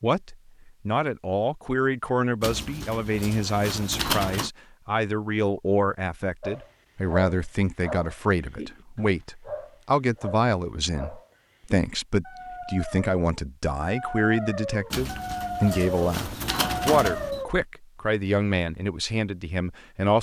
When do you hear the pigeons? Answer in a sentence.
The pigeons can be heard from 2.4 to 4.5 s and from 14.9 to 17.4 s.